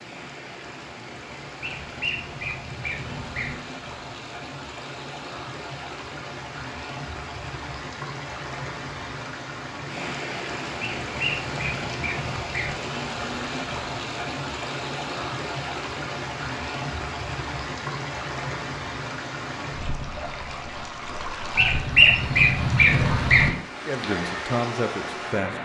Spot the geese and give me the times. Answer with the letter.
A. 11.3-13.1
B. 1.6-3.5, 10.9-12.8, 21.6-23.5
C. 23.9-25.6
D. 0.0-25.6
B.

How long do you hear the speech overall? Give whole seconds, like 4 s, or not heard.
2 s.